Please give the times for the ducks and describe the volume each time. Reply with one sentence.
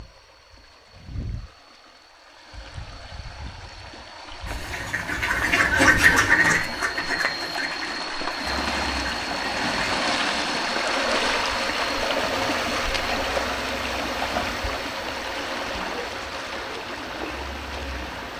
The ducks can be heard from 4.5 to 9.8 s, getting louder then quieter.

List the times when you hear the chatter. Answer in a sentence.
The chatter can't be heard in this clip.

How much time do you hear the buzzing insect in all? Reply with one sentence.
You can hear the buzzing insect for 10 seconds altogether.